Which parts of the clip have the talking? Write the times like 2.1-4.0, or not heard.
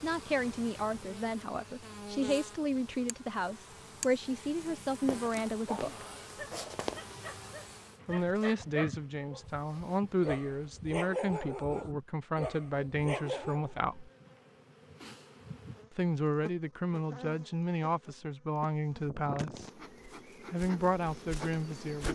0.0-6.0, 8.1-14.1, 15.9-19.7, 20.5-22.0.